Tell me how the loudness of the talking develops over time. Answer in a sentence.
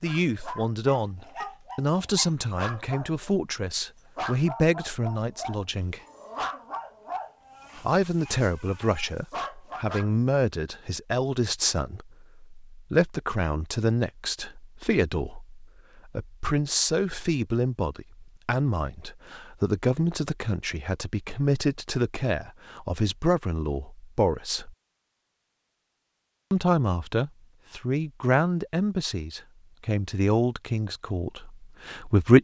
The volume of the talking stays about the same.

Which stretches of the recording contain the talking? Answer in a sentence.
You can hear the talking from 0.0 to 6.0 s, from 7.8 to 24.8 s and from 26.5 to 32.3 s.